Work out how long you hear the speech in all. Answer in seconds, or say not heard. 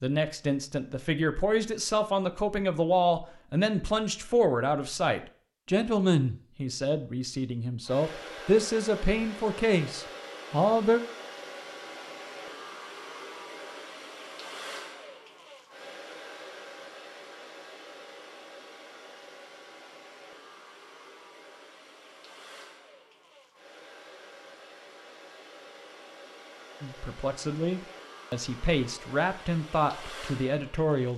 15 s.